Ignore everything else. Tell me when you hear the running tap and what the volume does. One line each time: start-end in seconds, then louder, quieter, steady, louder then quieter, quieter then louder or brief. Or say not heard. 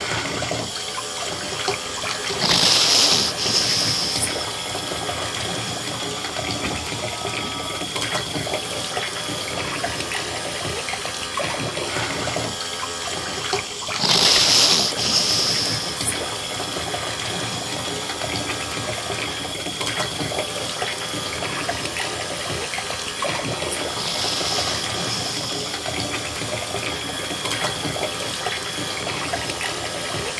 0.0-30.3 steady.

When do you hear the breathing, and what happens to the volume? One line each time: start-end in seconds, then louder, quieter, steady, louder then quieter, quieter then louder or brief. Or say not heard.
not heard.